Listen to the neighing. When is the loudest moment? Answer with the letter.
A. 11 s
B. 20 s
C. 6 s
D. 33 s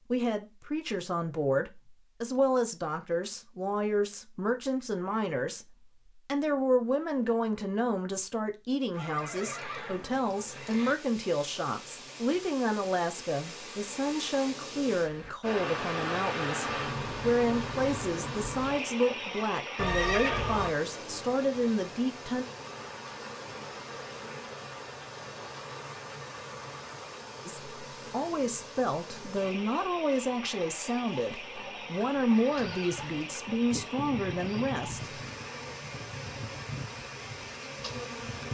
B.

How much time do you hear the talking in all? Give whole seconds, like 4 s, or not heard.
30 s.